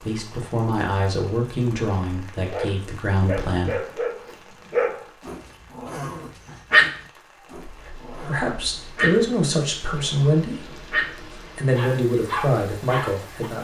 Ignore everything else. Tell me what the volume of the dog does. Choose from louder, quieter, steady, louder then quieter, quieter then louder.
louder then quieter.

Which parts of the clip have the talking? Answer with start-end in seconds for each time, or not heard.
0.1-3.8, 7.7-10.8, 11.6-13.5.